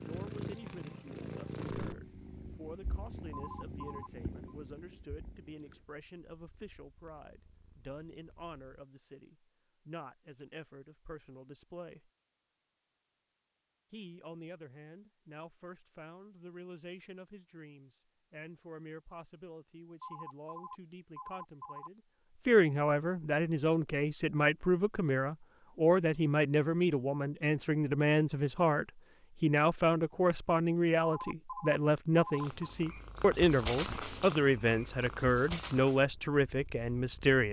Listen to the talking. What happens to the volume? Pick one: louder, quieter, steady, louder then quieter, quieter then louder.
louder.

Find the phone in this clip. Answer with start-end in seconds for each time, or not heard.
3.3-4.5, 20.0-21.9, 31.0-32.8.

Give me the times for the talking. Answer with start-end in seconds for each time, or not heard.
0.0-12.1, 13.9-37.4.